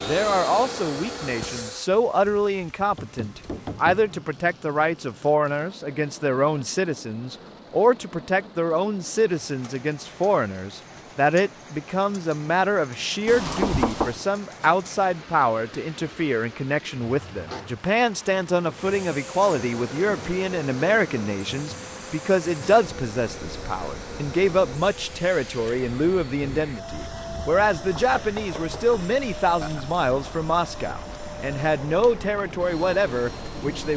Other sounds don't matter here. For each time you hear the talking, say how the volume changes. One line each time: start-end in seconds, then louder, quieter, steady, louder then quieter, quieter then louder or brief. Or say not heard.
0.0-33.9 steady.